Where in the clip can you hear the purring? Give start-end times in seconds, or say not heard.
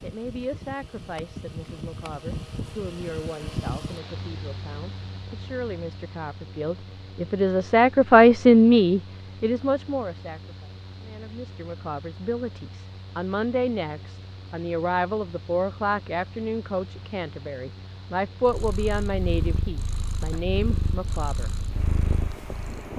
18.4-22.9.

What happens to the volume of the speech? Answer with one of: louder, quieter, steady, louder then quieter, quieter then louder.
louder then quieter.